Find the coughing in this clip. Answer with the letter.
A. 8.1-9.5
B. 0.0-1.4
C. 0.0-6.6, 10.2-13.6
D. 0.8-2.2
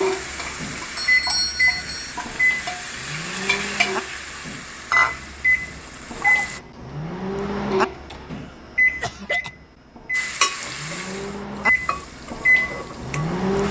A.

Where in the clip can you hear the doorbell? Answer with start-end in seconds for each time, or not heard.
0.9-2.1.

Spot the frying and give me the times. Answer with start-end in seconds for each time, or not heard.
0.0-6.6, 10.2-13.6.